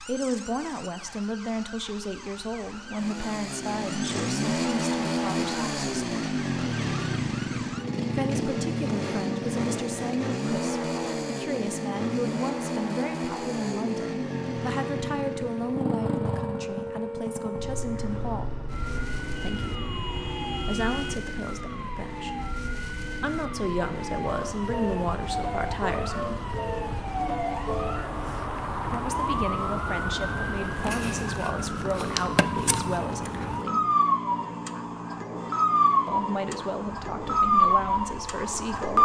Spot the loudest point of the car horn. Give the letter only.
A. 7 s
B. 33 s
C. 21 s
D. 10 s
C.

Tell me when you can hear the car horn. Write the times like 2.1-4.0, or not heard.
19.4-21.1.